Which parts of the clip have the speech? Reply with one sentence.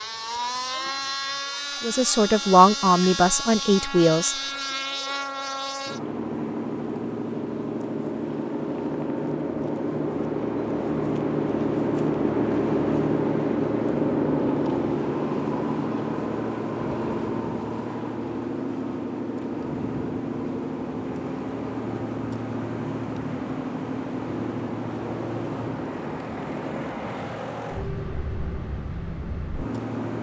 The speech can be heard from 1.8 to 4.3 s.